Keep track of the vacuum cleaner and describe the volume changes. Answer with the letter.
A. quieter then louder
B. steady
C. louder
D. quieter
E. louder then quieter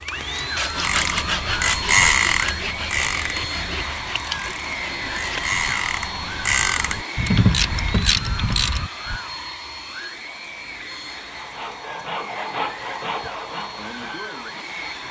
D.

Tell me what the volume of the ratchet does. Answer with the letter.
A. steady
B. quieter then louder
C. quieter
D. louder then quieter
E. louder
B.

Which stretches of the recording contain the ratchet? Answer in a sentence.
You can hear the ratchet from 0.7 to 9.2 s.